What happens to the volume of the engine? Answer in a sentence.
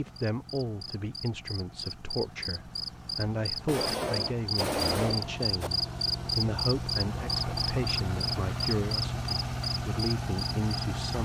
The volume of the engine goes up.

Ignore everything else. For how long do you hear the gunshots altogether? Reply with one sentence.
You can hear the gunshots for 2 seconds altogether.